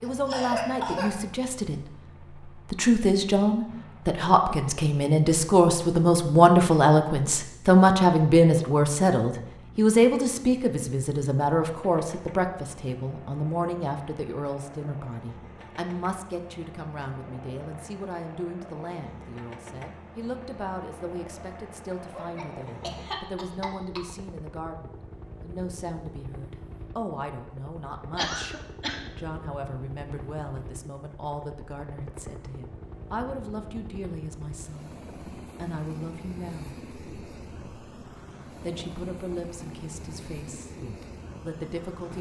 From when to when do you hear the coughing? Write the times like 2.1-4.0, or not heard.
0.0-1.2, 22.1-24.0, 28.1-29.1.